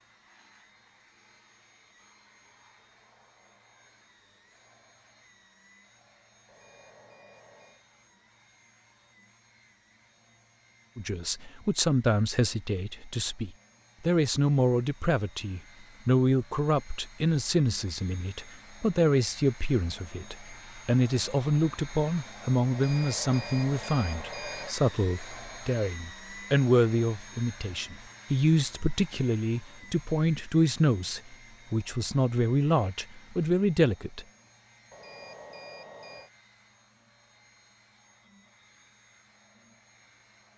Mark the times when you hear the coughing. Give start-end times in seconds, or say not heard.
not heard.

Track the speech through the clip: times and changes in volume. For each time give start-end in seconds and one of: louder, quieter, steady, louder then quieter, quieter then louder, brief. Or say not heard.
10.9-34.2 steady.